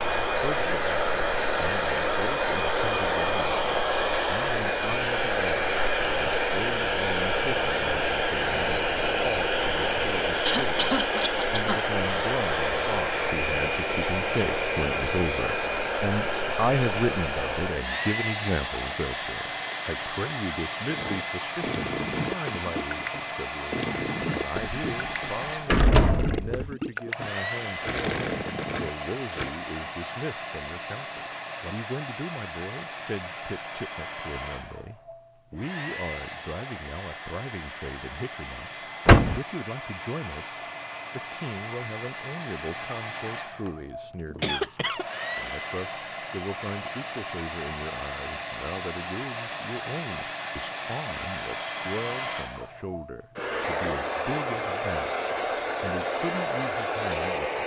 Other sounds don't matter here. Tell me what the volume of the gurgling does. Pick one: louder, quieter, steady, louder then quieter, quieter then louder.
steady.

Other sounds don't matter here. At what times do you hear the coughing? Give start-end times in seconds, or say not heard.
10.4-11.8, 44.4-45.0.